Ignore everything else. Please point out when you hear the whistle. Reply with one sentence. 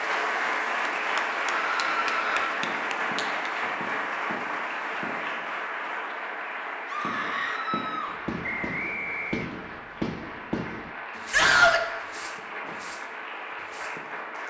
The whistle can be heard from 8.4 to 9.5 s.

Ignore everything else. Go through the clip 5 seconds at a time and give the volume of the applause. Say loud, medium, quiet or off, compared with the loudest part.
loud, medium, medium.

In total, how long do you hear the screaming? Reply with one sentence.
The screaming can be heard for 3 seconds in total.